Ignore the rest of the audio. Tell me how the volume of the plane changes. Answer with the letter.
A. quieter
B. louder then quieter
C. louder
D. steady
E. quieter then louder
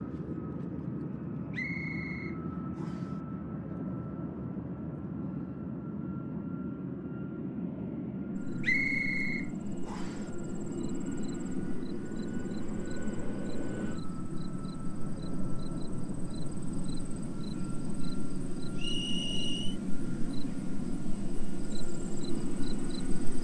D.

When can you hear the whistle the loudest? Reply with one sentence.
The loudest moment of the whistle is at 9 seconds.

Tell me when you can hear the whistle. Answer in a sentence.
The whistle can be heard from 1.5 to 3.1 s, from 8.6 to 10.2 s and from 18.8 to 19.8 s.